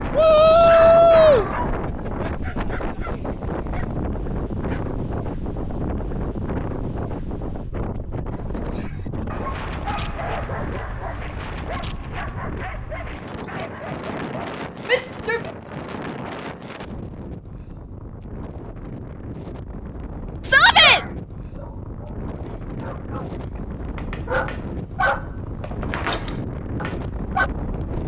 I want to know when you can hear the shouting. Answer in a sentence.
The shouting can be heard from 0.1 to 1.5 s, from 14.8 to 15.4 s and from 20.4 to 21.0 s.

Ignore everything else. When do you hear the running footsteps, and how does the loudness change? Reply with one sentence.
The running footsteps can't be heard in this clip.